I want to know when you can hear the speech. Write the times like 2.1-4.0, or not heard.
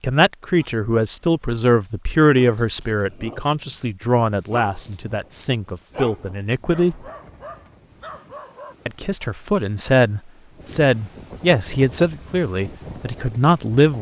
0.0-7.0, 8.8-13.9.